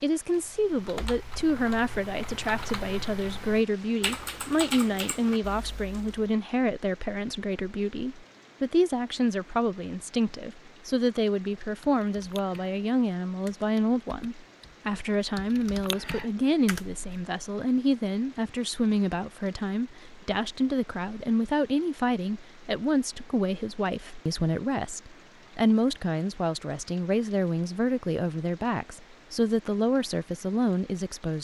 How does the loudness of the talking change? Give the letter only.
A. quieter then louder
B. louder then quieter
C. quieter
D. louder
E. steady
E.